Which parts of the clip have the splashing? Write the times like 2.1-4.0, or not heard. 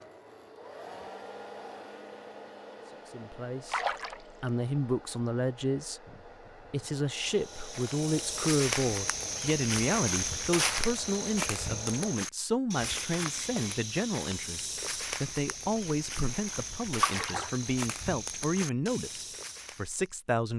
3.7-4.5, 17.0-17.5.